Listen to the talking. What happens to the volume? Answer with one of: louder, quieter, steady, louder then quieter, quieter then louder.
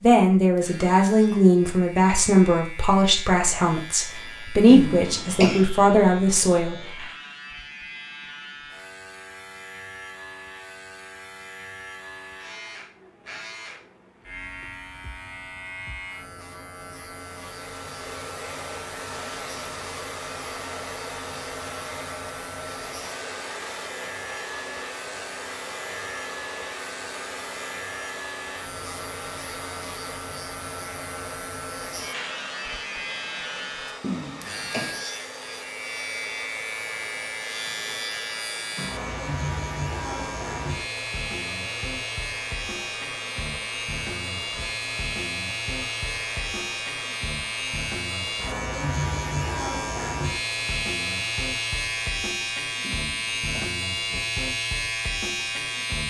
steady.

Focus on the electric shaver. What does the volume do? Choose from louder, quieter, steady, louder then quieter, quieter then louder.
louder.